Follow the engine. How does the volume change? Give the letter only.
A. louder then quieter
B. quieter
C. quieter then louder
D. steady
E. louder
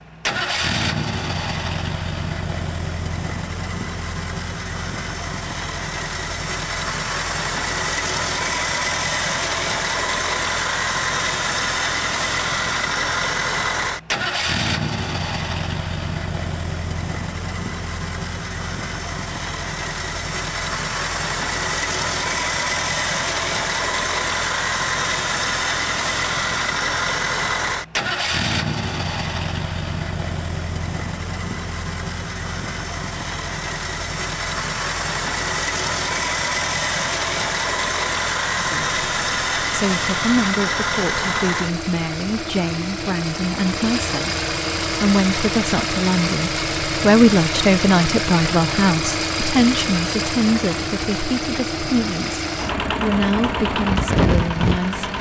D.